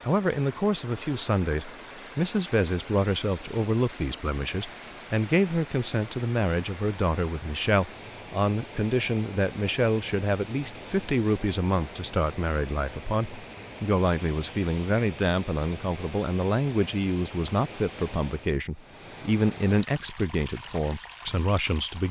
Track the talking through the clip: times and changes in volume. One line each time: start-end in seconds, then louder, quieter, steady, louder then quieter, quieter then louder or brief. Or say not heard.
0.0-22.0 steady.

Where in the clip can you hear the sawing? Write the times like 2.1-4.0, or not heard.
not heard.